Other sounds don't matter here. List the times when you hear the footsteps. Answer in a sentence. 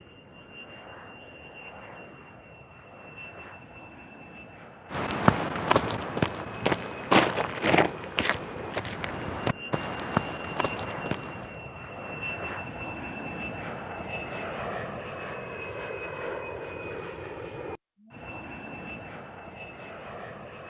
You can hear the footsteps from 4.9 to 11.6 s.